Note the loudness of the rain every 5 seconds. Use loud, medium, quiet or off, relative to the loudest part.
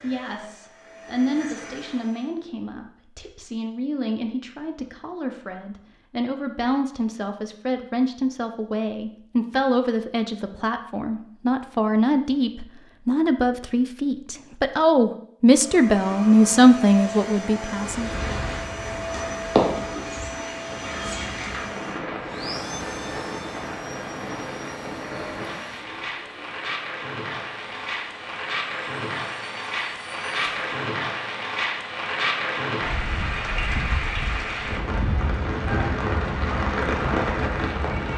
off, off, off, loud, medium, medium, loud, loud.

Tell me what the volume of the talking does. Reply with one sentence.
The loudness of the talking goes up.